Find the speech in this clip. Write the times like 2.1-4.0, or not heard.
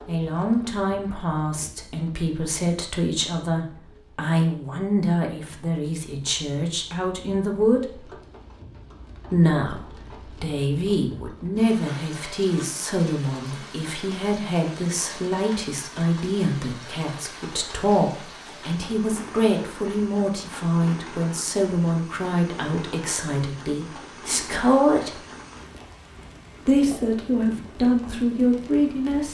0.1-8.2, 9.3-25.2, 26.6-29.3.